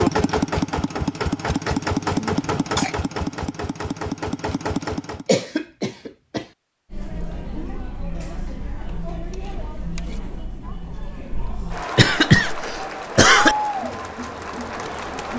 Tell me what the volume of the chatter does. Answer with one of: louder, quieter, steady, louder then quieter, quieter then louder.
louder.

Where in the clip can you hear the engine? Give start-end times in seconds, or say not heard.
0.0-5.2.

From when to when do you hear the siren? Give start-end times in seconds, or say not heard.
not heard.